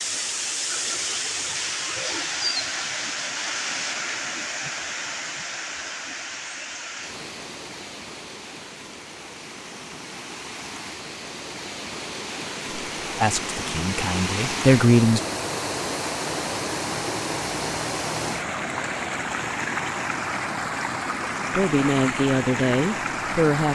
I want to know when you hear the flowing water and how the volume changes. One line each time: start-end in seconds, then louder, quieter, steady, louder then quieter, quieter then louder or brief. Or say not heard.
0.0-23.6 quieter then louder.